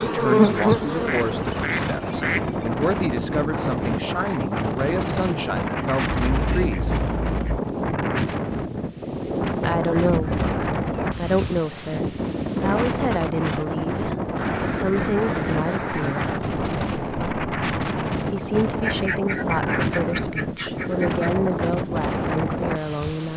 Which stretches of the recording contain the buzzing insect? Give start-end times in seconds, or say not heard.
0.0-1.6.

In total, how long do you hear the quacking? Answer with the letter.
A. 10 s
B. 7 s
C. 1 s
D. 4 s
A.